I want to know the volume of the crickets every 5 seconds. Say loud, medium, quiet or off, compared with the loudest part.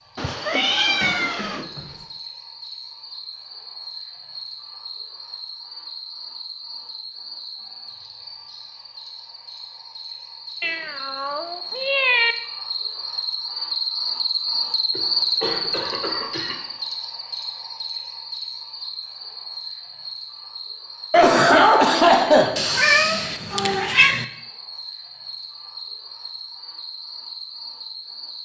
medium, medium, loud, loud, medium, medium.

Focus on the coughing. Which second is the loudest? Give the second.
22 s.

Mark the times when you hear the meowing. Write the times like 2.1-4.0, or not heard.
0.1-1.6, 10.6-12.3, 22.6-24.2.